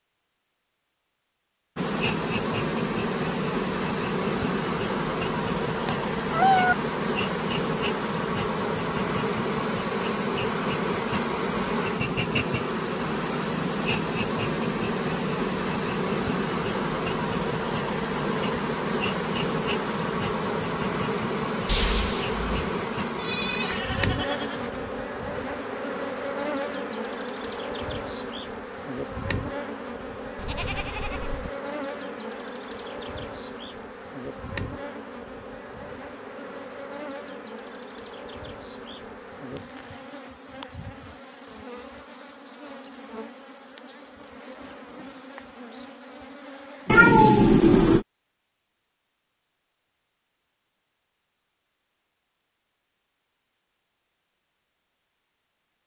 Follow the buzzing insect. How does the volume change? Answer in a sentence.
The loudness of the buzzing insect goes down.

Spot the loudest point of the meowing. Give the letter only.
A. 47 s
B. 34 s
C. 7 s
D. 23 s
A.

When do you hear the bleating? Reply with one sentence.
You can hear the bleating from 23.1 to 24.9 s and from 30.4 to 31.5 s.